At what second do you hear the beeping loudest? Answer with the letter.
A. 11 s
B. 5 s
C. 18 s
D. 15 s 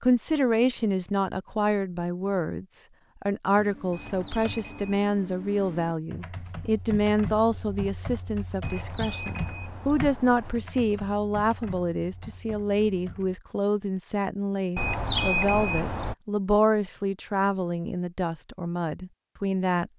D.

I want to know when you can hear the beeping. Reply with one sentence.
The beeping can be heard from 3.9 to 5.0 s, from 8.6 to 10.6 s and from 14.8 to 16.1 s.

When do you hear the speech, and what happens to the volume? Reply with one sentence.
You can hear the speech from 0.0 to 19.9 s, at a steady volume.